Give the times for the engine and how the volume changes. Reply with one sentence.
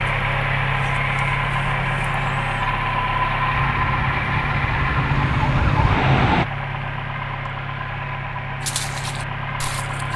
You can hear the engine from 0.0 to 10.1 s, getting quieter.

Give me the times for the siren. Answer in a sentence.
You can hear the siren from 3.5 to 6.5 s.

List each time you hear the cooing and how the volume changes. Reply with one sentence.
You can't hear the cooing here.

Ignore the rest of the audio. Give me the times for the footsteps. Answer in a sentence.
The footsteps can be heard from 8.6 to 10.1 s.